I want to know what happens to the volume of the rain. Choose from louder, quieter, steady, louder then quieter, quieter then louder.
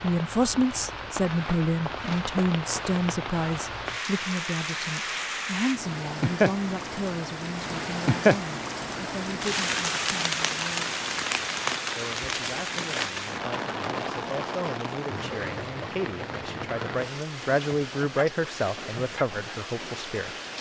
louder then quieter.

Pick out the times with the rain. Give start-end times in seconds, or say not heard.
0.0-20.5.